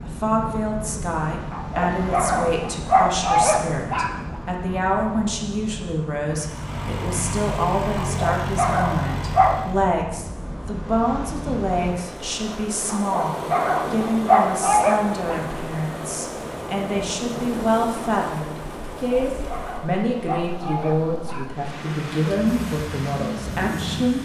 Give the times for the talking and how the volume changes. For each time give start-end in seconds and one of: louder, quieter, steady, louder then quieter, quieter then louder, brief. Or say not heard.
0.0-24.2 steady.